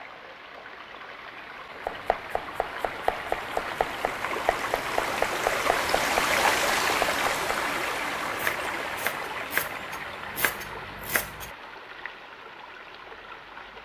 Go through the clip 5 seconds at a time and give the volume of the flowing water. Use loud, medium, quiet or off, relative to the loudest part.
medium, loud, quiet.